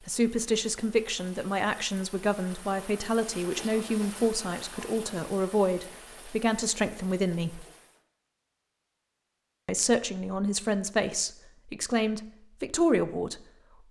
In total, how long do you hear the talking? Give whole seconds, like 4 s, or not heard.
11 s.